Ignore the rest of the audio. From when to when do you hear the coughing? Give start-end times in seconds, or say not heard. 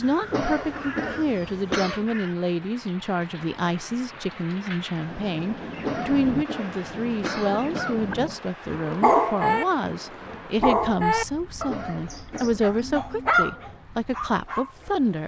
0.3-2.0, 5.8-8.1, 11.7-12.8.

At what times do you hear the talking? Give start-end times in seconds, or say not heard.
0.0-15.2.